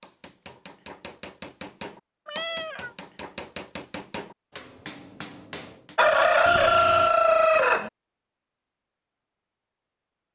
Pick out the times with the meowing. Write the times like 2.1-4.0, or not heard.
2.2-3.0, 6.5-7.1.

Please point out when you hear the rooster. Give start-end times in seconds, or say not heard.
6.0-7.9.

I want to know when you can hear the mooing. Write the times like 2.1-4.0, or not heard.
not heard.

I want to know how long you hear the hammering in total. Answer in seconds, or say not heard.
6 s.